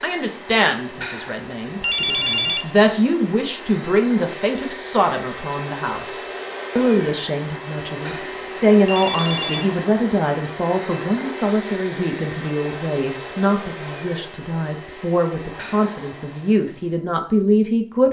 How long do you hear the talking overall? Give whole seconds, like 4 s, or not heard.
18 s.